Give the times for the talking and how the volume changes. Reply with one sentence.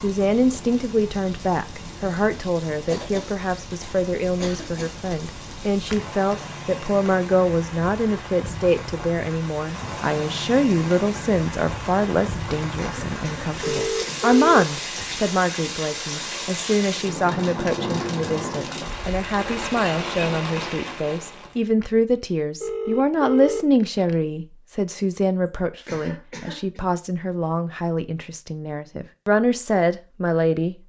You can hear the talking from 0.0 to 30.8 s, at a steady volume.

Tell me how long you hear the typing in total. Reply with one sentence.
The typing can't be heard in this clip.